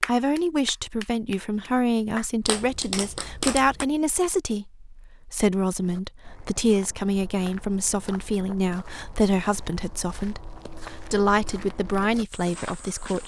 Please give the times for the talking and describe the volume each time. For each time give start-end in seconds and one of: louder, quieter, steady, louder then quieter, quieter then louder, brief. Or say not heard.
0.1-13.2 steady.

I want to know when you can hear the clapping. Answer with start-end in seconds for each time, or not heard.
0.0-3.9.